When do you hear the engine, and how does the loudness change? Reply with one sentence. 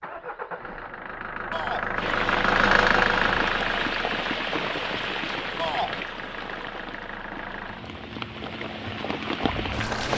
The engine can be heard from 0.0 to 10.1 s, getting louder then quieter.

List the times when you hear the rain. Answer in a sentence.
You can hear the rain from 1.9 to 10.1 s.